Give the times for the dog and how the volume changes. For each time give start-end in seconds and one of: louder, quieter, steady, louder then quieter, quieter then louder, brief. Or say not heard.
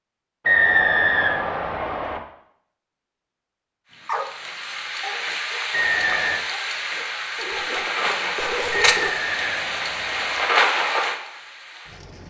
4.0-9.2 quieter then louder.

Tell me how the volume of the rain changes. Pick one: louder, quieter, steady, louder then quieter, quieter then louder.
louder.